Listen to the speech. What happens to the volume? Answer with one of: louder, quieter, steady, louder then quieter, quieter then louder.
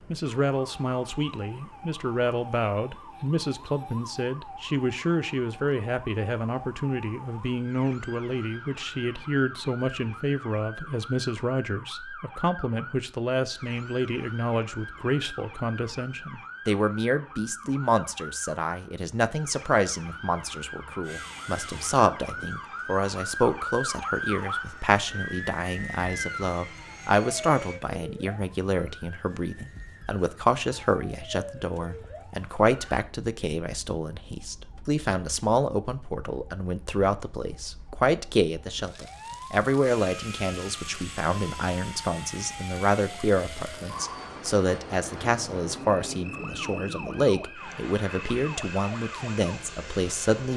steady.